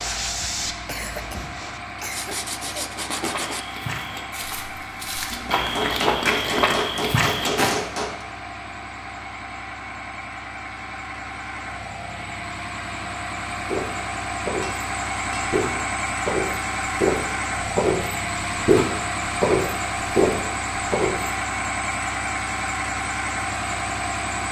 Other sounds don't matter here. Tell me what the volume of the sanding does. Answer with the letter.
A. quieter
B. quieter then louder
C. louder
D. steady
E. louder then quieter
B.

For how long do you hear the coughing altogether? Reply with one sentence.
You can hear the coughing for 2 seconds altogether.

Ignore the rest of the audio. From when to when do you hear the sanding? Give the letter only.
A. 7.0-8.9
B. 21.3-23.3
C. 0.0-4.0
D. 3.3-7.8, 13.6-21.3
C.